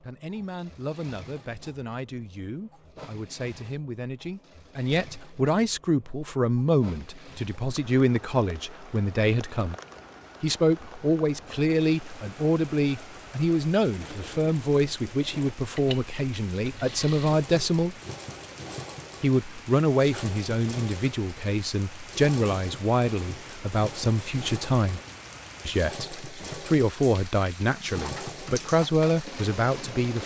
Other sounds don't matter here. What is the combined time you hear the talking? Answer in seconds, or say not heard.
28 s.